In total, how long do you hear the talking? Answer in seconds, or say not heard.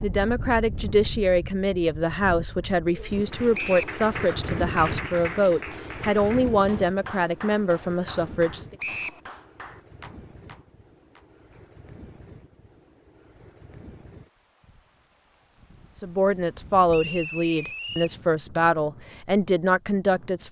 13 s.